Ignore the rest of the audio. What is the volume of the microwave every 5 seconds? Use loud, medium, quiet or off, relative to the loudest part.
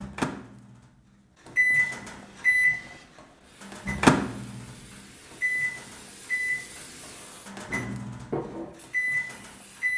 loud, medium.